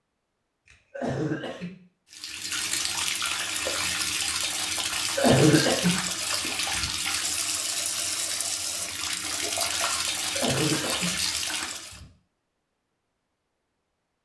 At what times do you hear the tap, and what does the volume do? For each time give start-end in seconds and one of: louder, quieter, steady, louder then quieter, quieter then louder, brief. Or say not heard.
2.1-12.0 steady.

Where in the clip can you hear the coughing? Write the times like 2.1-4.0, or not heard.
0.7-1.7, 5.2-6.9, 10.3-12.1.